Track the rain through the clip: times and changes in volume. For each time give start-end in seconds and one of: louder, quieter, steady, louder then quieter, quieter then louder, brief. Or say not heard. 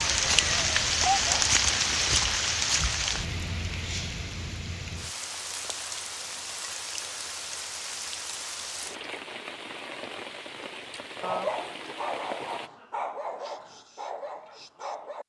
0.0-12.7 quieter.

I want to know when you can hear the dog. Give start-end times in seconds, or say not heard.
0.0-1.5, 11.2-15.2.